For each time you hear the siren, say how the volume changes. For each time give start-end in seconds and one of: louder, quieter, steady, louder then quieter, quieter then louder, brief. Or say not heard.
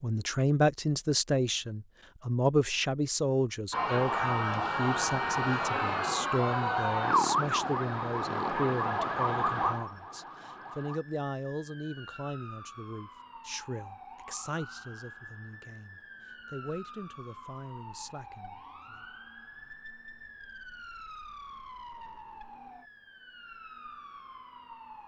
3.7-25.0 quieter.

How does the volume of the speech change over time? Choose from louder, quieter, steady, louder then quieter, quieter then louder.
quieter.